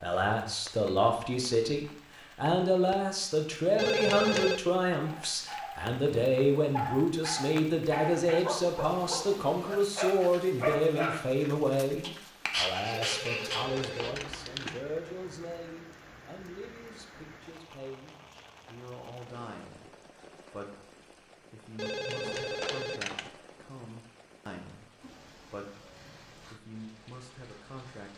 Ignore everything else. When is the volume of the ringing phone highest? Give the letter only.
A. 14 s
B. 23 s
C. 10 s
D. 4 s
D.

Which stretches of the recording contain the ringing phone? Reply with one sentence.
The ringing phone can be heard from 3.8 to 4.6 s, from 12.9 to 14.8 s and from 21.8 to 23.3 s.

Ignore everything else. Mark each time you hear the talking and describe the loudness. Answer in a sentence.
You can hear the talking from 0.0 to 28.1 s, getting quieter.